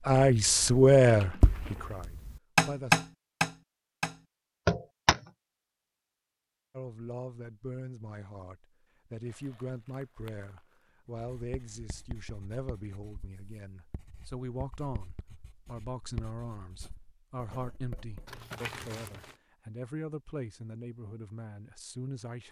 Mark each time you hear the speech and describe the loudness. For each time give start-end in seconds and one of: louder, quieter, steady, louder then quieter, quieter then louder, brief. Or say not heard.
0.1-3.0 brief
6.7-22.4 steady.